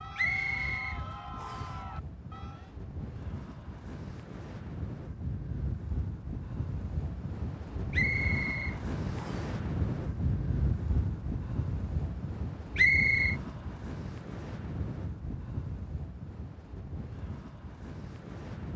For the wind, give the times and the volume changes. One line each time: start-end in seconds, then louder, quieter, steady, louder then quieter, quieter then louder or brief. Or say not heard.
0.0-18.7 louder then quieter.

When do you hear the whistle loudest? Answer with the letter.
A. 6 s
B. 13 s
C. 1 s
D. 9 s
B.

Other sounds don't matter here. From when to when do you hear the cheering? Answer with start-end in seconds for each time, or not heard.
0.0-2.8.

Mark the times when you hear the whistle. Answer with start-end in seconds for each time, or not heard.
0.1-1.8, 7.9-9.5, 12.8-13.3.